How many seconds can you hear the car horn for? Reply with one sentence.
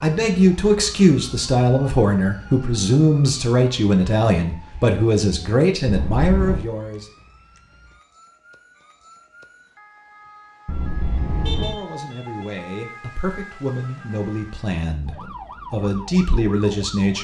The car horn can be heard for 2 seconds in total.